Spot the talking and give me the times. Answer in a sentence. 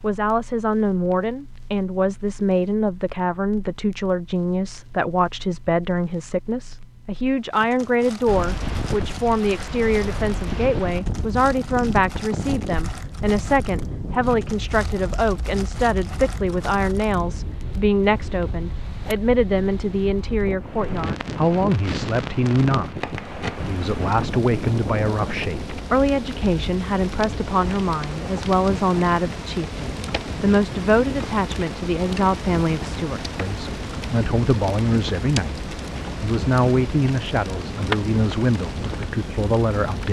The talking can be heard from 0.0 to 40.0 s.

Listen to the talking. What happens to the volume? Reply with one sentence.
The loudness of the talking stays about the same.